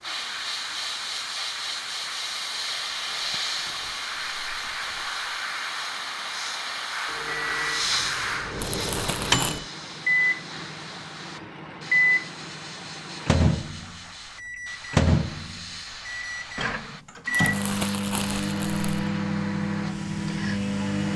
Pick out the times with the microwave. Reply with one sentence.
The microwave can be heard from 7.0 to 21.1 s.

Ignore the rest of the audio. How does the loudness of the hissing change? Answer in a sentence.
The volume of the hissing goes down.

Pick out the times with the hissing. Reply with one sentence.
You can hear the hissing from 0.0 to 21.1 s.